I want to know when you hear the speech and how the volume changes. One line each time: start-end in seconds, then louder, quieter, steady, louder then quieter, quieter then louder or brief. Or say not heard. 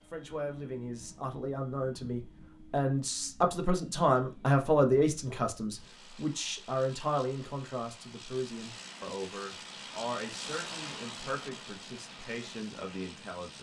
0.1-13.5 louder then quieter.